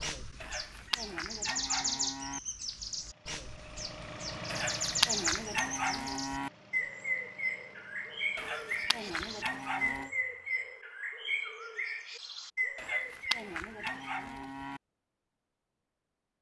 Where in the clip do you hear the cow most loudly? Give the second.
5 s.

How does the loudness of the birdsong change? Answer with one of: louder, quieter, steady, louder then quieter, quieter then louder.
steady.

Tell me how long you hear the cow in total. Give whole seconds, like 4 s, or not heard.
8 s.